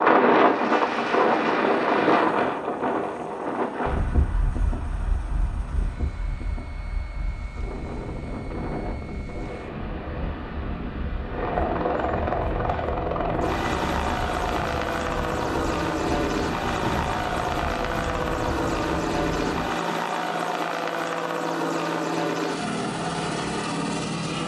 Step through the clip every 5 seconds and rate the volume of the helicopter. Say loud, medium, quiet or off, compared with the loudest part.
quiet, quiet, loud, loud, loud.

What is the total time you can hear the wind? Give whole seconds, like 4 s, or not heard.
20 s.